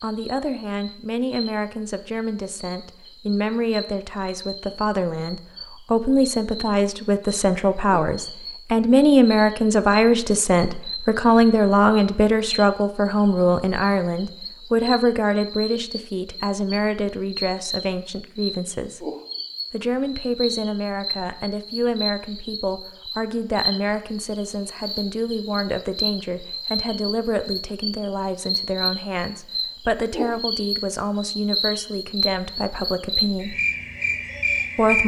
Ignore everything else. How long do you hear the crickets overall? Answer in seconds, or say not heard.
35 s.